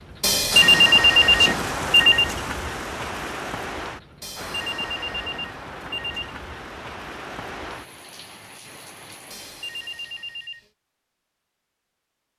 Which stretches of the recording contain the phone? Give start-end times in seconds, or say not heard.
0.2-2.4, 4.2-6.3, 9.3-10.7.